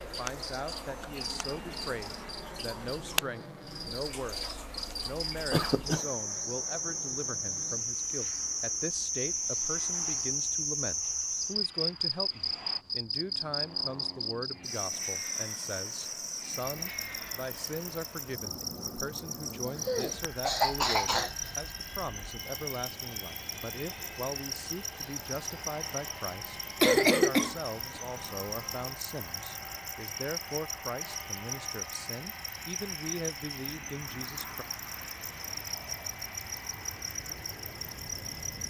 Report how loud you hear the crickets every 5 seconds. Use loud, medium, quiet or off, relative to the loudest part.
medium, loud, loud, medium, medium, medium, medium, medium.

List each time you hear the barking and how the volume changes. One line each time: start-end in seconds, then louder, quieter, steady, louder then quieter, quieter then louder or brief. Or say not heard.
not heard.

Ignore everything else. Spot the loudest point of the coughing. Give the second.
27 s.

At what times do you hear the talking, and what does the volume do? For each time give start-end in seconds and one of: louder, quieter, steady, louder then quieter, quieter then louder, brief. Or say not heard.
0.0-34.6 steady.